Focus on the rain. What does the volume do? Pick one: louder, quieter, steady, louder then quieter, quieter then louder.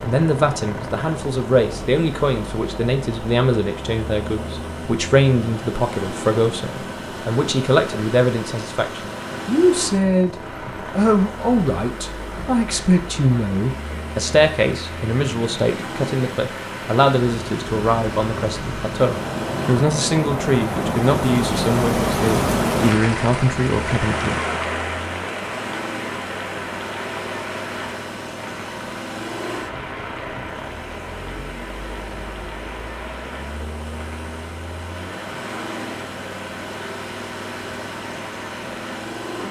louder then quieter.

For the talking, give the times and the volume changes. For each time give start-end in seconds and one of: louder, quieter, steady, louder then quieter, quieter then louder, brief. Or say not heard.
0.0-10.3 steady
10.9-24.4 steady.